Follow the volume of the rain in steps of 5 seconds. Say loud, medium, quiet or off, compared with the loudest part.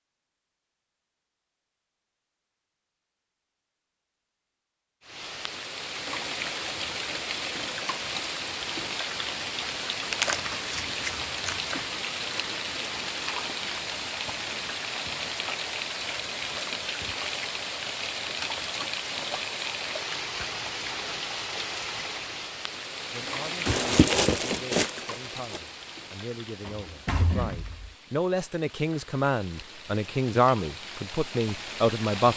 off, loud, loud, loud, loud, quiet, medium.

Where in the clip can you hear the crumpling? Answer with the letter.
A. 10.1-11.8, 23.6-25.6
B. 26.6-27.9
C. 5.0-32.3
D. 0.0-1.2
A.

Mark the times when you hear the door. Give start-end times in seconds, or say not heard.
26.6-27.9.